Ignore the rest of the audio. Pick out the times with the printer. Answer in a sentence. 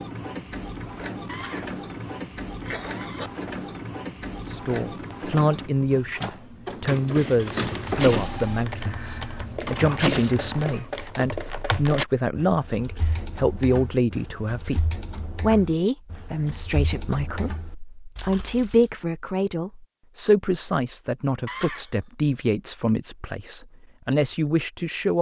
You can hear the printer from 0.0 to 11.0 s.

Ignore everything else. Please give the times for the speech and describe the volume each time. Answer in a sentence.
You can hear the speech from 4.5 to 25.1 s, at a steady volume.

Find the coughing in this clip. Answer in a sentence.
You can hear the coughing from 1.2 to 3.3 s and from 21.4 to 21.9 s.